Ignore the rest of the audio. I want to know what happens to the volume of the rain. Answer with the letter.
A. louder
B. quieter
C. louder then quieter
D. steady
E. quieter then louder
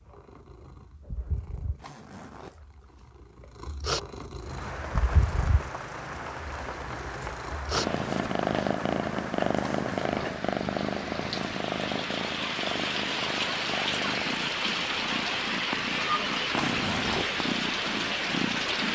A.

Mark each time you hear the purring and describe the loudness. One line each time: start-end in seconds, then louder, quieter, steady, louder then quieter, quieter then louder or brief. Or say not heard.
0.0-18.9 louder then quieter.